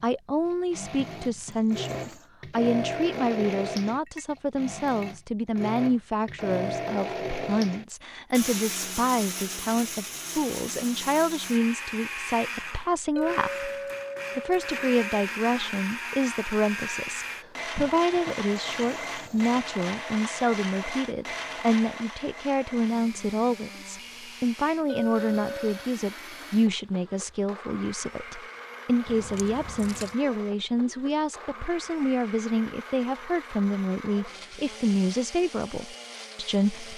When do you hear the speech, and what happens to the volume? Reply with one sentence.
The speech can be heard from 0.0 to 13.7 s, at a steady volume; and from 14.3 to 36.9 s, at a steady volume.